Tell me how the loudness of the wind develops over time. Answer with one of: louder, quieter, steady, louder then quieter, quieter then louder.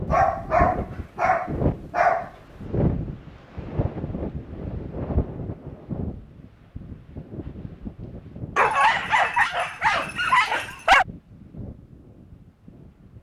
quieter.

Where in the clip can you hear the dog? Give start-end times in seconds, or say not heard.
0.1-2.3, 8.6-11.1.